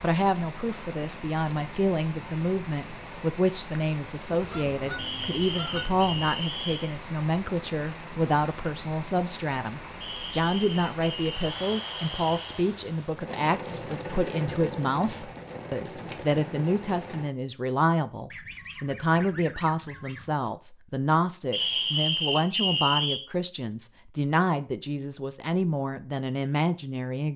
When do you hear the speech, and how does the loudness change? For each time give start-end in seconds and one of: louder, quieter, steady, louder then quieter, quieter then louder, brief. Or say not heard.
0.0-27.3 steady.